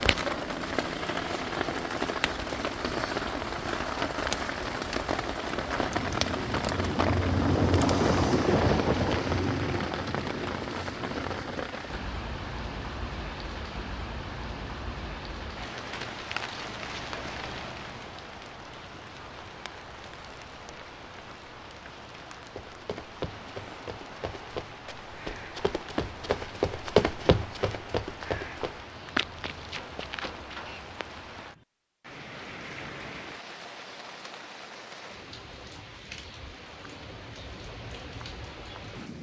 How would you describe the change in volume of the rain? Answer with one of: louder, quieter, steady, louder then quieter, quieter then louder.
quieter.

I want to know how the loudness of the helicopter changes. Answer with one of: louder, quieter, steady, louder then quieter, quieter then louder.
louder then quieter.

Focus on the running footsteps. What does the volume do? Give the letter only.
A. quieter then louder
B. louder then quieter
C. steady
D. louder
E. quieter
B.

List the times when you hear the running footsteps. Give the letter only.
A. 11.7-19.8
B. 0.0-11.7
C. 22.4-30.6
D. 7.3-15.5
C.